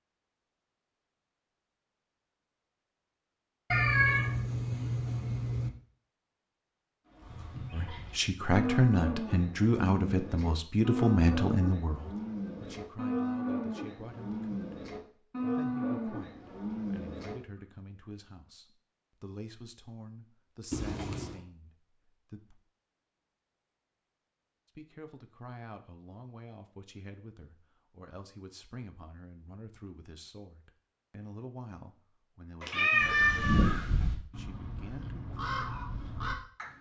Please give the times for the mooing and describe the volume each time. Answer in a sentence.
The mooing can be heard from 7.1 to 17.4 s, at a steady volume.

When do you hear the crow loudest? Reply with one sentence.
The volume of the crow peaks at 34 seconds.